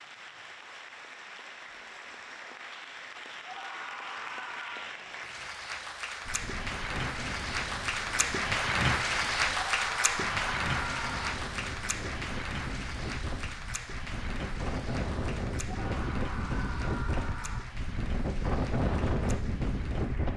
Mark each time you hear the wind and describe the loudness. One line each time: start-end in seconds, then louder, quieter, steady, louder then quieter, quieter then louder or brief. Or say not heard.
6.2-20.3 louder.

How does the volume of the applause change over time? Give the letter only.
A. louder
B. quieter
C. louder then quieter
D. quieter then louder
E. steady
C.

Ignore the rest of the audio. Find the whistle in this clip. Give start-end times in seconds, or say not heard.
not heard.